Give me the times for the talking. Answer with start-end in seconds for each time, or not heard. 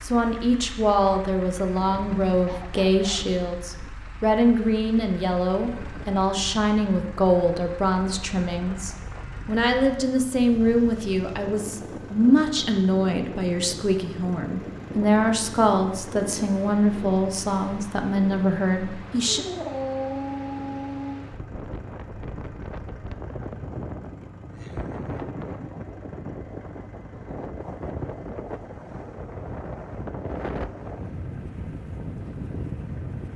0.0-19.4.